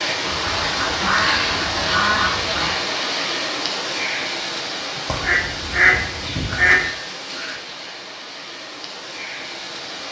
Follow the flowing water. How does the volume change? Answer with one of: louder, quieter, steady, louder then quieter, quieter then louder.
quieter.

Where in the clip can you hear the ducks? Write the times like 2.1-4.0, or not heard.
0.2-2.8, 5.0-6.9.